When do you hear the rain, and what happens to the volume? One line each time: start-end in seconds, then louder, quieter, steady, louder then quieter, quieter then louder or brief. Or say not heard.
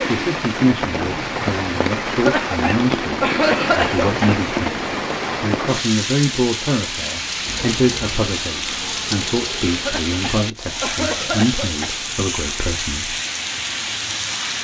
0.0-14.5 steady.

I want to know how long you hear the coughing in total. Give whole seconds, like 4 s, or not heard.
5 s.